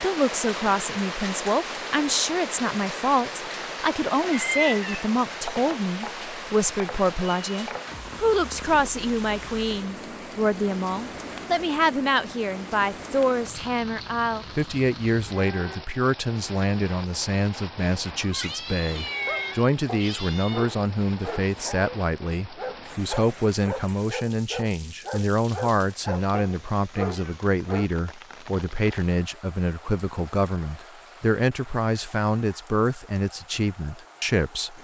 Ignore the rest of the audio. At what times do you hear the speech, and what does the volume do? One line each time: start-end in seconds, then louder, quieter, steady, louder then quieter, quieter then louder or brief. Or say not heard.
0.0-34.8 steady.